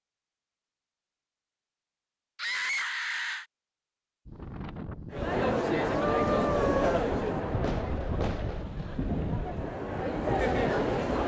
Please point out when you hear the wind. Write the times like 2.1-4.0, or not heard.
4.2-11.2.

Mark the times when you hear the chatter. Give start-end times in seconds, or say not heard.
5.1-11.2.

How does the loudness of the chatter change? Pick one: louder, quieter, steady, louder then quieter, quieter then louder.
quieter then louder.